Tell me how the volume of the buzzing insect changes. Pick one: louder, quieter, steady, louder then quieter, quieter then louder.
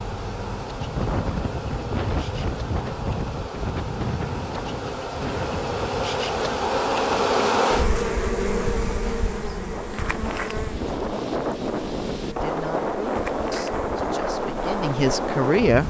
louder then quieter.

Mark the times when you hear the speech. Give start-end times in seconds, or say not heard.
12.2-15.8.